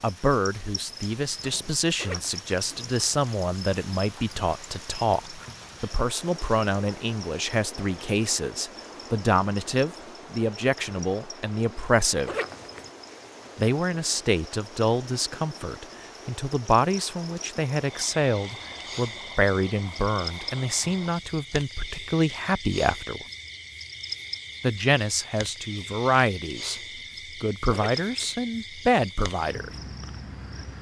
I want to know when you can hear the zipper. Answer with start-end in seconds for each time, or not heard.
1.9-2.4, 12.2-12.9, 27.7-28.4.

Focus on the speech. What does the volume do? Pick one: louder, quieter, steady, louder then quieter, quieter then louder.
steady.